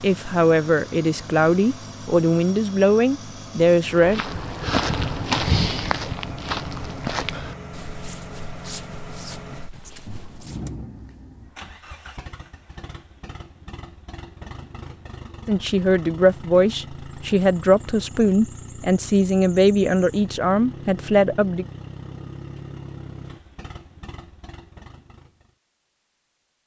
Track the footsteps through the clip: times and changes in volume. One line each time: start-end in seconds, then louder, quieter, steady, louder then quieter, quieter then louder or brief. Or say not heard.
3.9-10.7 quieter.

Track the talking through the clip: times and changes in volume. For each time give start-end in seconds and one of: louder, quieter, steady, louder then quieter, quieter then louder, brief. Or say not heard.
0.0-4.2 steady
15.4-21.6 steady.